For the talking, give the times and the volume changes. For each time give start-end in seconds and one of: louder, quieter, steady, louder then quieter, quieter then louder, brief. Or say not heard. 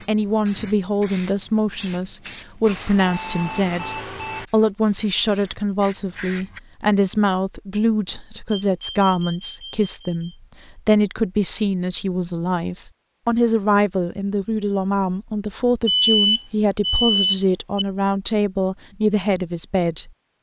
0.1-20.1 steady.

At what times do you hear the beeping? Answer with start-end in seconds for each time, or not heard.
2.6-4.5, 8.5-10.3, 15.8-17.9.